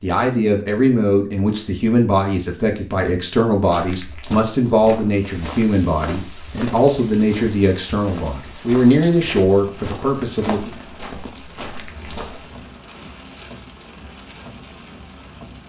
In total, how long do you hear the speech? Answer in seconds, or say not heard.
11 s.